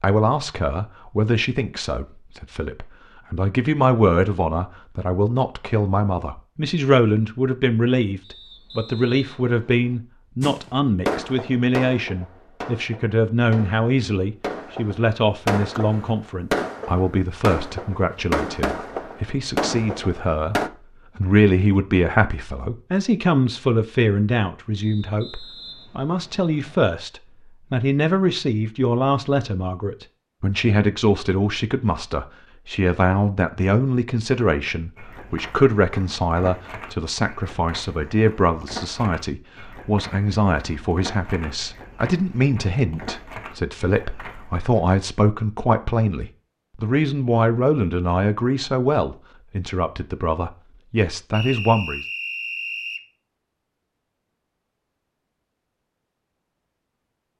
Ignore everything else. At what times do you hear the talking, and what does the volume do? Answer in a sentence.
You can hear the talking from 0.0 to 52.0 s, at a steady volume.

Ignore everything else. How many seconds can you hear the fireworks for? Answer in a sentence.
The fireworks can be heard for 10 seconds in total.